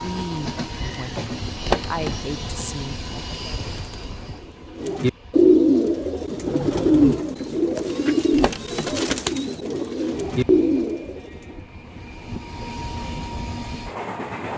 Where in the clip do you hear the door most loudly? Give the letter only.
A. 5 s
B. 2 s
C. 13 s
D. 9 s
B.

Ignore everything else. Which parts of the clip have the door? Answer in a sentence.
The door can be heard from 1.6 to 2.1 s and from 8.3 to 8.9 s.